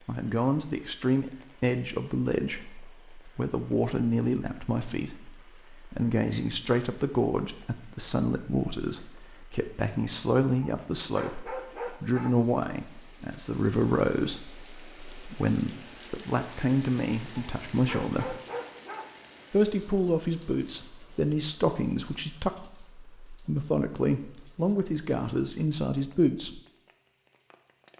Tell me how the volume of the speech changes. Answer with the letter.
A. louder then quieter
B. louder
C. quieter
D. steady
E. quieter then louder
D.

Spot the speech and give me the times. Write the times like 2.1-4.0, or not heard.
0.1-18.4, 19.5-26.6.